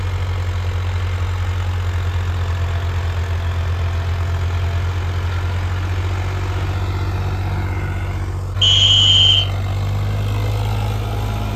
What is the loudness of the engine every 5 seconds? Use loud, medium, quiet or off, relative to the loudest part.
medium, loud, loud.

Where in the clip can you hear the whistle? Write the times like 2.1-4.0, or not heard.
8.6-9.4.